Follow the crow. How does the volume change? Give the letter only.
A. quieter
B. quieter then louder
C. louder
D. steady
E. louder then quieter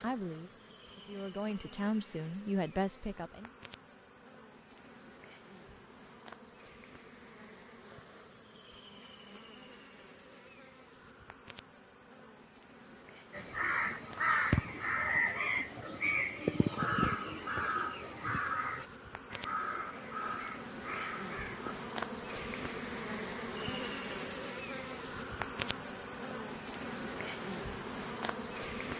A.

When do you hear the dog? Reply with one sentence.
The dog can't be heard in this clip.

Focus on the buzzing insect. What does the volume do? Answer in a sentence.
The volume of the buzzing insect goes up.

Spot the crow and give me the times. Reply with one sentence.
The crow can be heard from 13.3 to 21.8 s.